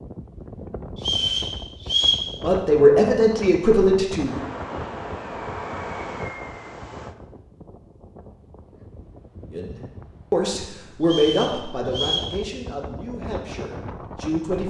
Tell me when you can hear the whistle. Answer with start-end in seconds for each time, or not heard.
0.9-2.2, 11.0-12.3.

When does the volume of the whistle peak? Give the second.
2 s.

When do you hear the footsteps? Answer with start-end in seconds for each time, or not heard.
not heard.